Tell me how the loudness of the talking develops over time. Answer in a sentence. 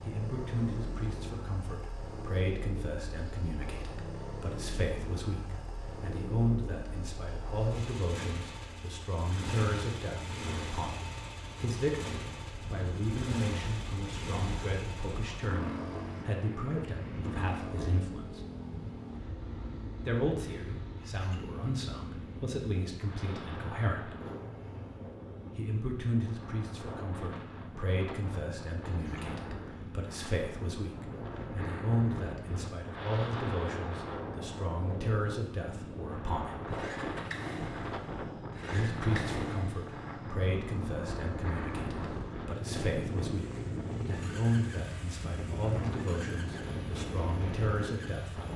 The volume of the talking stays about the same.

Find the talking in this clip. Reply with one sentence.
The talking can be heard from 0.0 to 18.4 s, from 20.1 to 24.1 s, from 25.6 to 36.6 s and from 38.7 to 48.5 s.